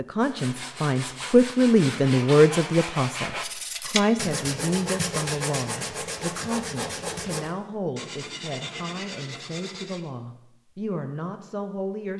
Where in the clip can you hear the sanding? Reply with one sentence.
The sanding can be heard from 0.2 to 10.1 s.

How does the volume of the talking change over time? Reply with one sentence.
The loudness of the talking goes down.